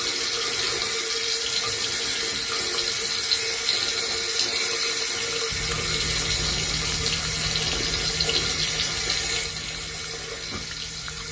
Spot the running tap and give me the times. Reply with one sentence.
You can hear the running tap from 0.0 to 11.2 s.